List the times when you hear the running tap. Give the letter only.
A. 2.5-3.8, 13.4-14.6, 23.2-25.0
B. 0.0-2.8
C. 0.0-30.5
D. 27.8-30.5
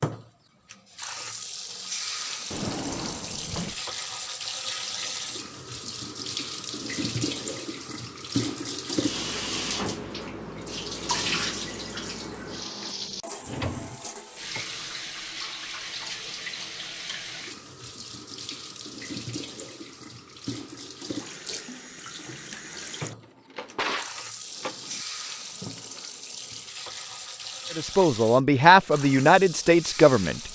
C.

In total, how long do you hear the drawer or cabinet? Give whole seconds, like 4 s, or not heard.
4 s.